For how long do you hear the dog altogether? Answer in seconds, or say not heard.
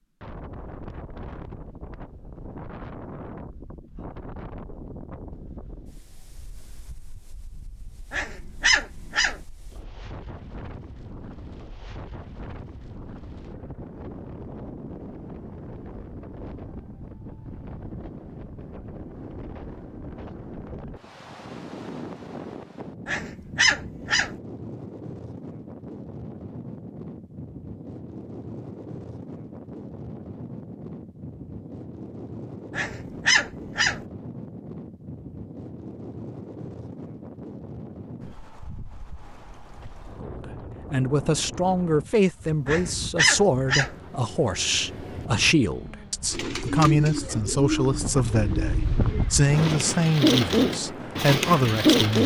5 s.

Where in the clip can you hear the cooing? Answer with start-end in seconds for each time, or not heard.
46.3-52.2.